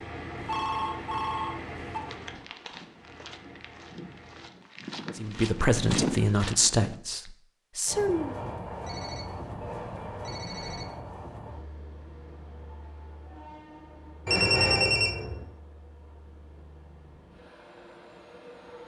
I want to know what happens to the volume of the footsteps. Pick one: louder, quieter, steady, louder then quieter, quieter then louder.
louder.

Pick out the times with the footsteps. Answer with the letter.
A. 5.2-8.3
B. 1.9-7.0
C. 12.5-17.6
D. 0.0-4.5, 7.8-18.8
B.